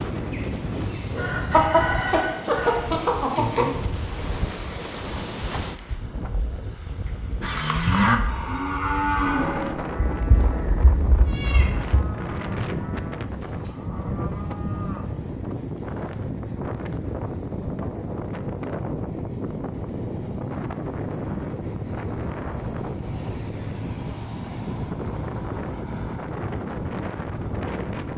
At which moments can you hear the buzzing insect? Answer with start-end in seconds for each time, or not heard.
not heard.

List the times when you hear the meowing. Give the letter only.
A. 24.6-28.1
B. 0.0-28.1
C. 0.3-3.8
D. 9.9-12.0
D.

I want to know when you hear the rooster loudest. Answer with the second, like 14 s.
2 s.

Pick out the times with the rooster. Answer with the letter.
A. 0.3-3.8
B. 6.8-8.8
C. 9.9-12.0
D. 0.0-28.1
A.